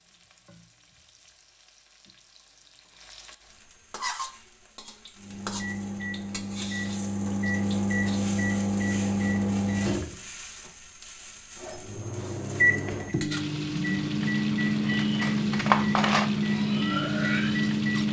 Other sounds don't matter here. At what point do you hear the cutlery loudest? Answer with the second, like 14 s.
16 s.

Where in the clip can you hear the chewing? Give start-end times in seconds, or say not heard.
not heard.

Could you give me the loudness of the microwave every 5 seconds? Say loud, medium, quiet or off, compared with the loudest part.
off, loud, loud, loud.